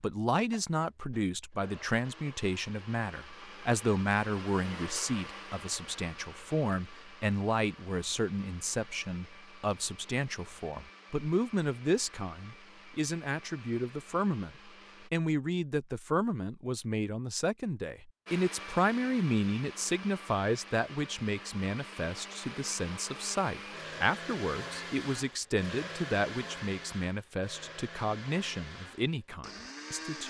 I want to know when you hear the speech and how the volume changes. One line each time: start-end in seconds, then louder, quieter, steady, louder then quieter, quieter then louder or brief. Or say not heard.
0.0-30.2 steady.